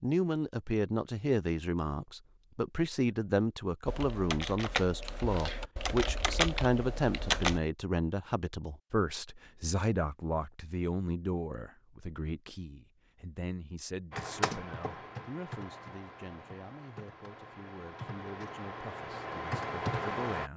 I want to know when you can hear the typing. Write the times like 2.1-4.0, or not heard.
3.9-7.6, 14.1-20.5.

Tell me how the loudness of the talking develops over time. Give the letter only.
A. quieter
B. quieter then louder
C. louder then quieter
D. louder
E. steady
A.